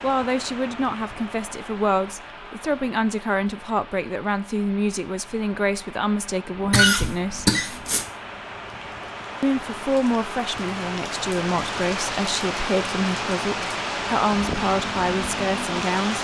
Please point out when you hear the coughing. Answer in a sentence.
The coughing can be heard from 6.7 to 8.1 s.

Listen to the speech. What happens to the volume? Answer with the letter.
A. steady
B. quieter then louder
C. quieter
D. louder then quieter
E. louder
A.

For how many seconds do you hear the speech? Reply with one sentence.
The speech can be heard for 14 seconds in total.